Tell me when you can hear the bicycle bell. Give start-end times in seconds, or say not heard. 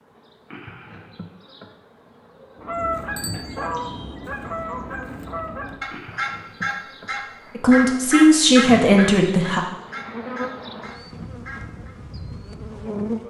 3.1-3.6.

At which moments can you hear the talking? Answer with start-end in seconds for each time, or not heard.
7.5-9.6.